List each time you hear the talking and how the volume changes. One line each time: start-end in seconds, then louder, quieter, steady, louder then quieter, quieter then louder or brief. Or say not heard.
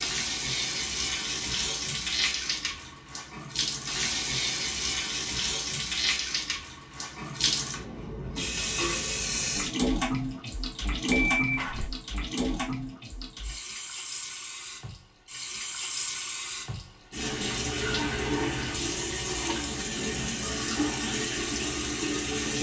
not heard.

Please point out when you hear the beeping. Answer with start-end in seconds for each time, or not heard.
11.1-11.9.